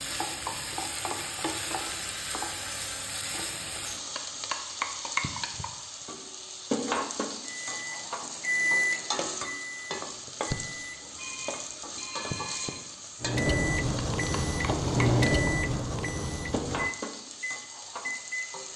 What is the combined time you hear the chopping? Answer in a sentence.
You can't hear the chopping here.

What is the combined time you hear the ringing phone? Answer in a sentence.
The ringing phone can be heard for 3 seconds in total.